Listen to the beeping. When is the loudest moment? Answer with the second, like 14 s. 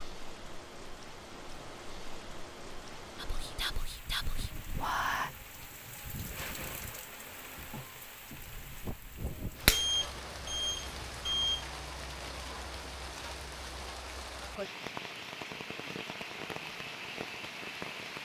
10 s.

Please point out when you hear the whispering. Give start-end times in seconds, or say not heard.
3.1-5.3.